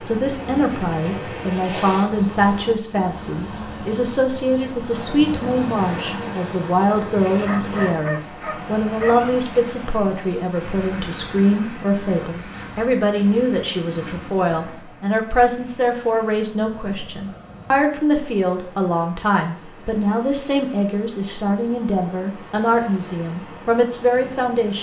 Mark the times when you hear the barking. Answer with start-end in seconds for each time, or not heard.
7.5-9.3.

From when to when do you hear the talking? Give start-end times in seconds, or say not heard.
0.0-24.7.